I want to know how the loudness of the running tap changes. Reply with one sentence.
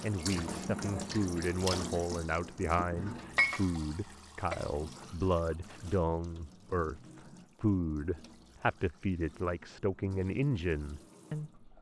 The loudness of the running tap goes down.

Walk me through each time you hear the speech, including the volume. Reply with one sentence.
The speech can be heard from 0.0 to 11.7 s, at a steady volume.